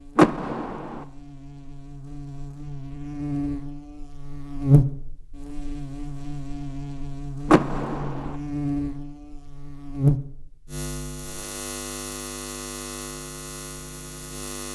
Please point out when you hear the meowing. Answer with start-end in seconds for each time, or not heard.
not heard.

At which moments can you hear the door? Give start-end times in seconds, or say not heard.
0.1-1.1, 7.5-8.3.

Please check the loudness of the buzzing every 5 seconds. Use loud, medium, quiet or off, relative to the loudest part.
loud, medium, loud.